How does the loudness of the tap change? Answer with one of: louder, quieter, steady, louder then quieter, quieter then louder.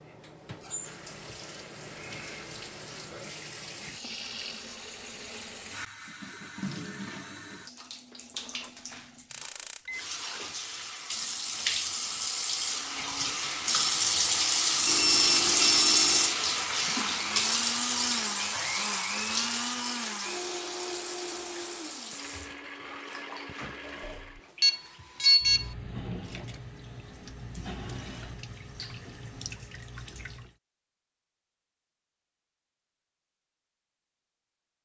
louder then quieter.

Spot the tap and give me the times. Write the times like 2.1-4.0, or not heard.
0.0-30.6.